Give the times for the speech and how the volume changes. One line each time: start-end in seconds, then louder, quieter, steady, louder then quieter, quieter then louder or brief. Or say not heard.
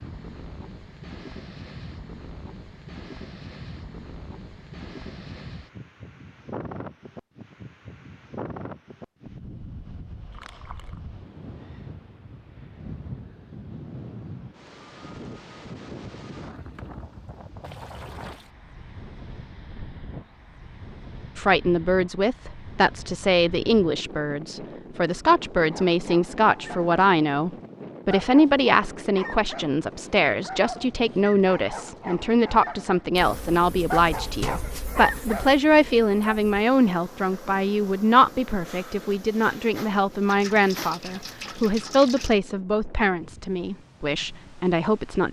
21.4-45.2 steady.